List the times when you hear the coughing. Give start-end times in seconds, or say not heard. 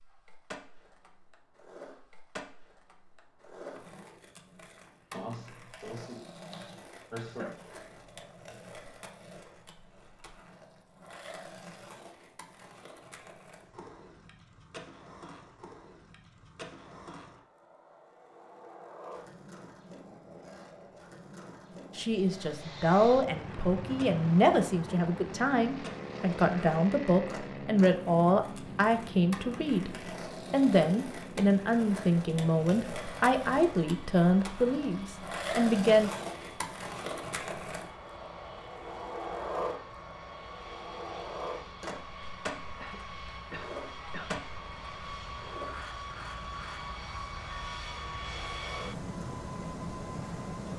5.1-7.6, 42.8-44.5.